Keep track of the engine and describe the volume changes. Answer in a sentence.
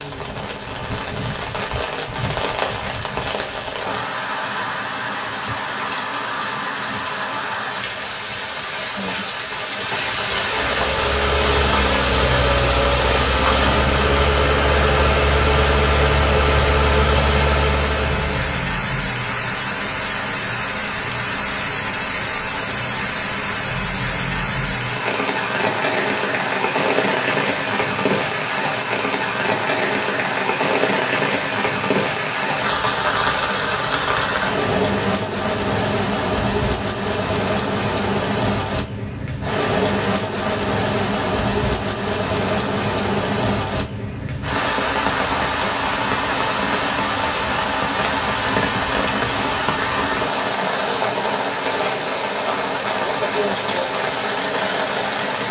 The volume of the engine stays about the same.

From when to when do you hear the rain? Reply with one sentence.
The rain can be heard from 0.0 to 55.4 s.